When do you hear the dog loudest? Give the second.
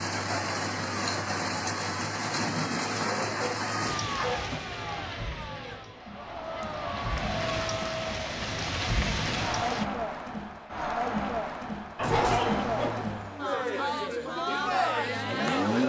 12 s.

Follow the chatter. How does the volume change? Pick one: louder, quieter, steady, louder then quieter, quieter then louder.
louder.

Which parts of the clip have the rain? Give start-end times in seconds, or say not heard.
0.0-9.8.